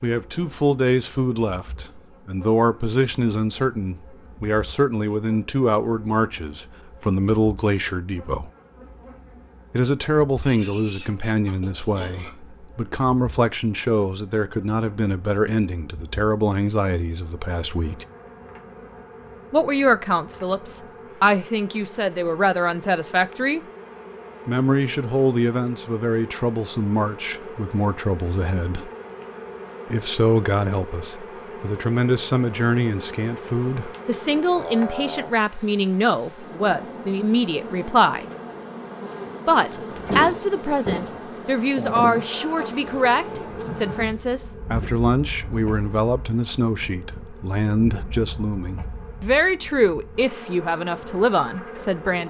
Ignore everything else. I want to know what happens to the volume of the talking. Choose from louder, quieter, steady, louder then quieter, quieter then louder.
steady.